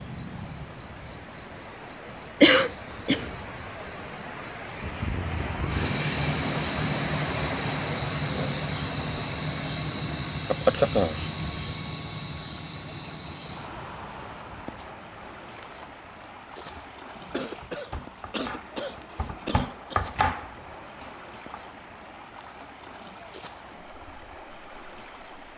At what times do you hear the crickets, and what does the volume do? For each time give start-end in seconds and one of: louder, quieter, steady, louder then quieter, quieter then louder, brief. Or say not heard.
0.0-25.5 quieter.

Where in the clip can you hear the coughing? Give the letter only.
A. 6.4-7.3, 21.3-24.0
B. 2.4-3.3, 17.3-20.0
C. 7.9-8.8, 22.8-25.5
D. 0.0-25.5
B.